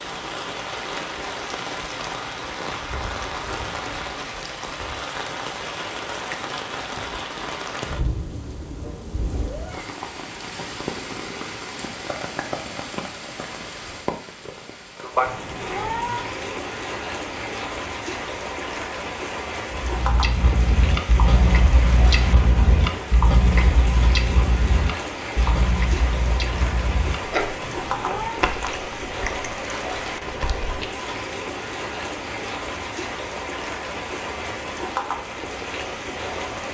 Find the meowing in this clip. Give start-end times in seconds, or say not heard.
15.2-16.3, 27.6-28.4.